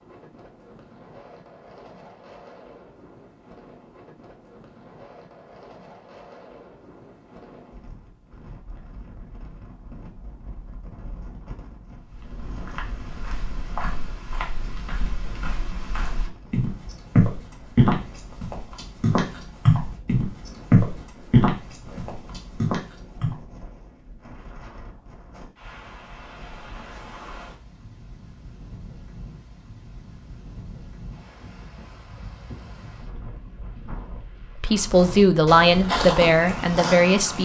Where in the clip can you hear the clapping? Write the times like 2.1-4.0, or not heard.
not heard.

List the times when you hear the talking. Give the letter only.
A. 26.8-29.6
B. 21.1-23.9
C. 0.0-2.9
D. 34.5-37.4
D.